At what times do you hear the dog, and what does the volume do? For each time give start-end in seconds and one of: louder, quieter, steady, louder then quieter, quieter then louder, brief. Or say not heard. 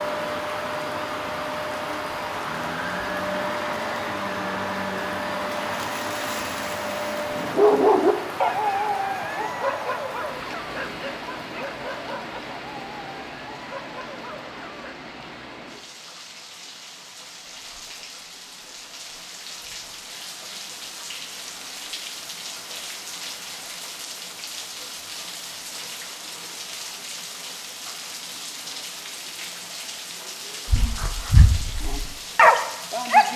7.3-14.9 quieter
30.6-33.3 brief.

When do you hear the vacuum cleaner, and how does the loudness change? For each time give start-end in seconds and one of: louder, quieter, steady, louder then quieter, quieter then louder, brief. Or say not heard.
0.0-7.5 steady.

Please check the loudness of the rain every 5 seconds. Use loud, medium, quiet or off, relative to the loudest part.
loud, loud, loud, medium, loud, loud, loud.